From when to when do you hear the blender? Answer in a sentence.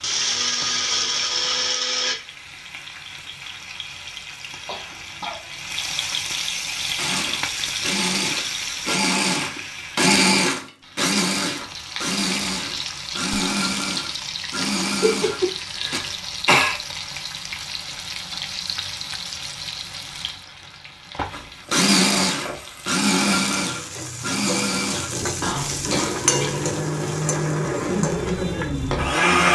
You can hear the blender from 0.0 to 2.1 s, from 7.0 to 16.0 s and from 21.3 to 29.5 s.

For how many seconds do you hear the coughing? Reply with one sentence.
You can hear the coughing for 4 seconds altogether.